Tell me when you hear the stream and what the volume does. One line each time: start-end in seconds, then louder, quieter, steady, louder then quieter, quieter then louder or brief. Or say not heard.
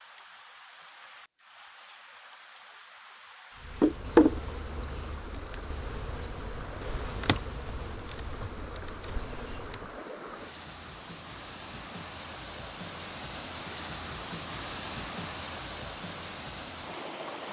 0.0-17.4 louder.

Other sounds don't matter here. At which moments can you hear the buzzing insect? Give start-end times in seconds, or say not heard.
3.6-9.9.